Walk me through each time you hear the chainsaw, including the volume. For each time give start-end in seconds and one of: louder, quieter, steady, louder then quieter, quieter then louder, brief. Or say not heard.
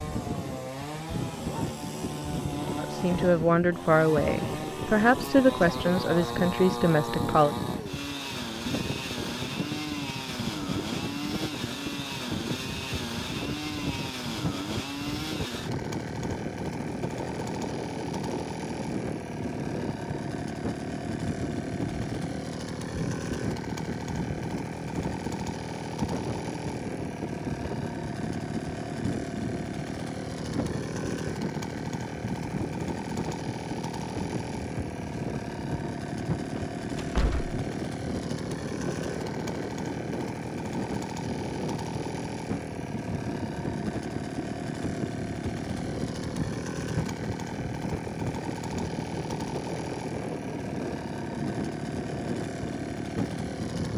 0.0-53.9 steady.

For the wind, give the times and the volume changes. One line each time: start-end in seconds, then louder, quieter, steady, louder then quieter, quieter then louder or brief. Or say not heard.
0.0-53.9 steady.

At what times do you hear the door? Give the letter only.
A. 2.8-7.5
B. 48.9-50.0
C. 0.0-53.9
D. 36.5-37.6
D.